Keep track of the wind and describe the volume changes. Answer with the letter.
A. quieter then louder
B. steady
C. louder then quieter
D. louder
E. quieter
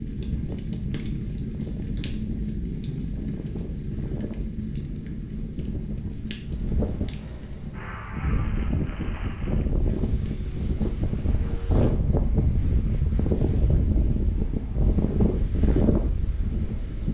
D.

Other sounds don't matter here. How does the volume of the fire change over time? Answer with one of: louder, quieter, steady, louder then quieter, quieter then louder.
quieter.